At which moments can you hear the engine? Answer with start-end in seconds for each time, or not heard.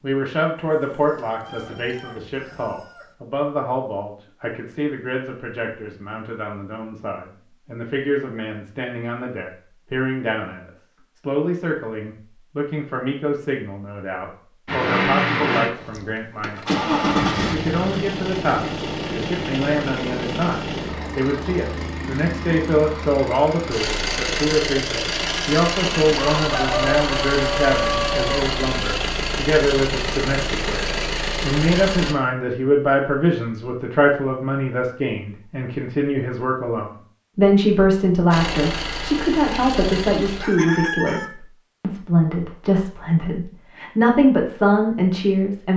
14.7-32.1, 38.3-40.4.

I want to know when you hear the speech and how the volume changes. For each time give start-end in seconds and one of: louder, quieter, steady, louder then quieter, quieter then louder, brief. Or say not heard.
0.0-45.7 louder.